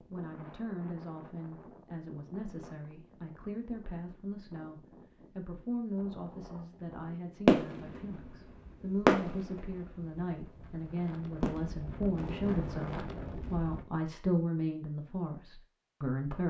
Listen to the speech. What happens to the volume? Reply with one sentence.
The volume of the speech goes up.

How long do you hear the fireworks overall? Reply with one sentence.
You can hear the fireworks for 4 seconds altogether.